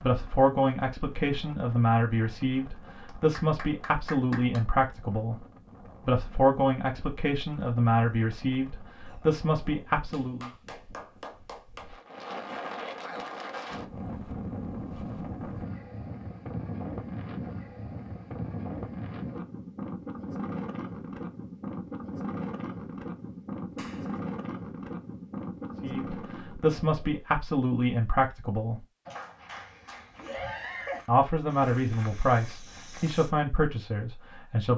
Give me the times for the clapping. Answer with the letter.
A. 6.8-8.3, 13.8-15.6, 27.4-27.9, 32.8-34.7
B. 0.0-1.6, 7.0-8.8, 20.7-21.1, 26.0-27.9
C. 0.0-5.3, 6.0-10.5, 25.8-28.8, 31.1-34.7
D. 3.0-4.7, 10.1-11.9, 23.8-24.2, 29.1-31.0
D.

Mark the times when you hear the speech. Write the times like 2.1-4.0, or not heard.
0.0-5.3, 6.0-10.5, 25.8-28.8, 31.1-34.7.